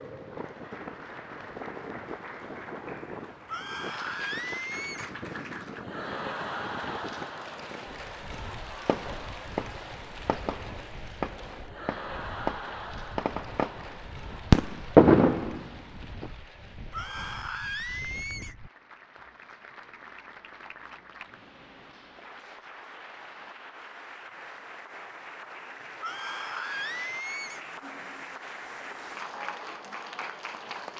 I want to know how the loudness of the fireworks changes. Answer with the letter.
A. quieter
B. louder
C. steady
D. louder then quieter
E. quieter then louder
B.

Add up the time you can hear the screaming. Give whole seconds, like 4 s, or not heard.
5 s.